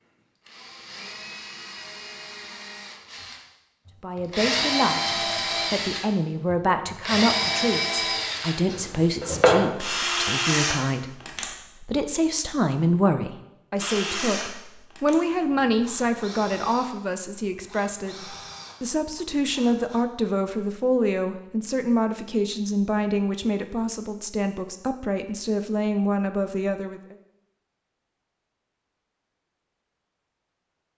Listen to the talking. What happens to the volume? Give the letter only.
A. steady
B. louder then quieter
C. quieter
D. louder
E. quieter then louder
A.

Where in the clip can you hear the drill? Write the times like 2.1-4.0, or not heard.
0.5-11.5, 13.8-20.0.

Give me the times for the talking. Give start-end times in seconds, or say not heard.
4.0-27.1.